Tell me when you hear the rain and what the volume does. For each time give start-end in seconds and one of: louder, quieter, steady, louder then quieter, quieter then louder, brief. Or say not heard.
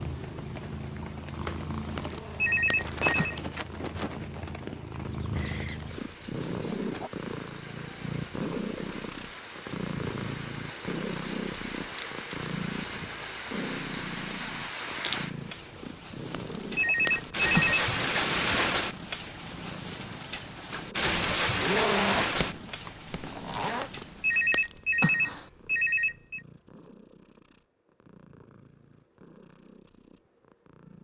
0.0-24.6 louder.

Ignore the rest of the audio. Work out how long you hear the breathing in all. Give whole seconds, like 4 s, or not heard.
not heard.